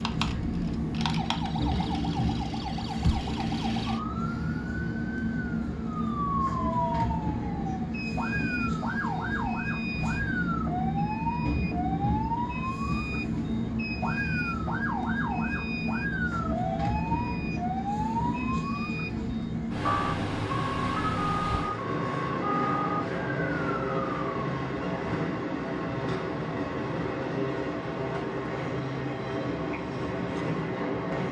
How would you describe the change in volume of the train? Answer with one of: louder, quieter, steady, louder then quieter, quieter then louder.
steady.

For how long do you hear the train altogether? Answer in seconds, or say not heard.
31 s.